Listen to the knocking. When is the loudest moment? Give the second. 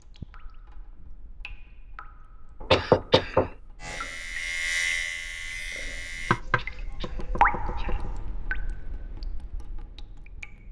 3 s.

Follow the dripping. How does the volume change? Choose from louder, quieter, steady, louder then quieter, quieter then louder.
louder then quieter.